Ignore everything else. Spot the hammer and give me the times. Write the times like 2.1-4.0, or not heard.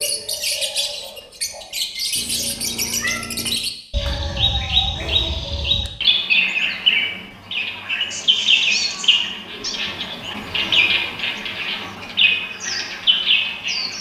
not heard.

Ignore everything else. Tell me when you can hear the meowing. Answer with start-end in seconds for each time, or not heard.
2.1-3.6, 8.1-9.8.